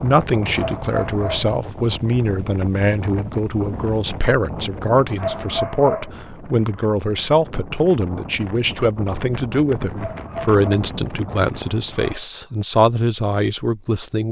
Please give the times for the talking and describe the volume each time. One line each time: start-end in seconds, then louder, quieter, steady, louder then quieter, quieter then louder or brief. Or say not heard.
0.0-14.2 steady.